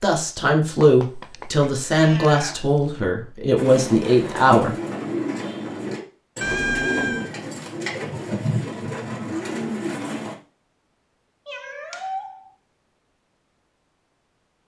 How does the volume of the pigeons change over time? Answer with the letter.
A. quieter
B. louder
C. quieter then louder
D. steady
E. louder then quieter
D.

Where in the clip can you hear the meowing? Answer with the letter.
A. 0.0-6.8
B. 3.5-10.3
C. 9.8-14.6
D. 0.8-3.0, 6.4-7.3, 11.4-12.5
D.